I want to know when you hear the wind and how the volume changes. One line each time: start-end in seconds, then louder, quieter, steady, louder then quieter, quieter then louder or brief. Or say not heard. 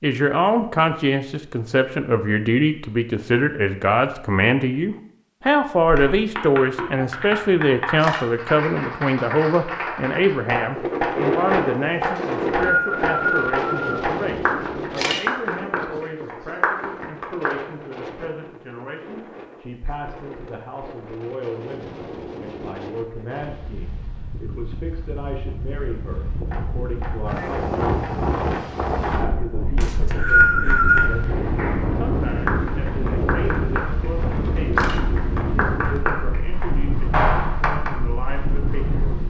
10.8-39.2 quieter then louder.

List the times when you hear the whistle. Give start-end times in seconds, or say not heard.
12.2-13.9, 29.8-31.1.